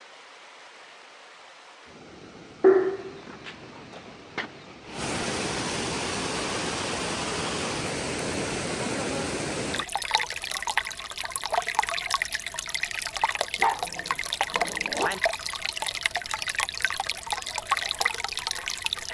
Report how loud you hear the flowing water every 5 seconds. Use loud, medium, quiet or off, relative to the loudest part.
quiet, loud, loud, loud.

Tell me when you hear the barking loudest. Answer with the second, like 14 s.
3 s.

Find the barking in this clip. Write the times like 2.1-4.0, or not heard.
2.6-4.5, 13.6-15.2.